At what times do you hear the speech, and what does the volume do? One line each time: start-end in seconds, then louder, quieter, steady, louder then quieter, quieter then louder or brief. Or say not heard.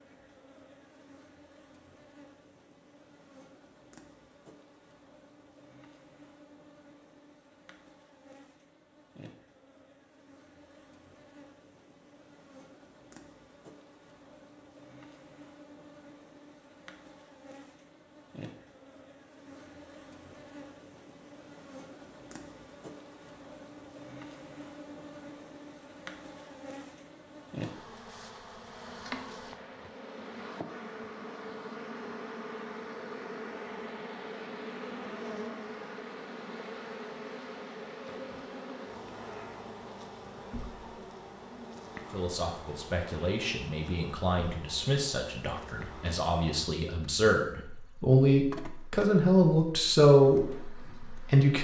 42.1-51.5 louder.